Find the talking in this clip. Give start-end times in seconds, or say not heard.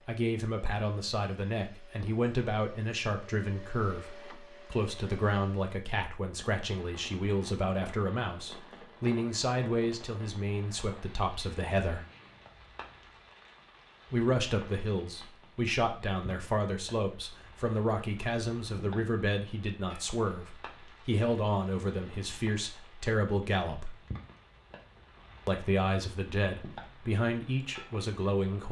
0.1-12.1, 14.1-23.9, 25.4-28.6.